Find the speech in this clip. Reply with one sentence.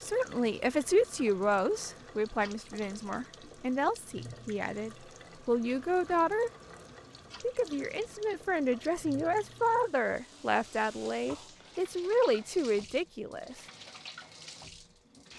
You can hear the speech from 0.0 to 6.5 s and from 7.4 to 13.6 s.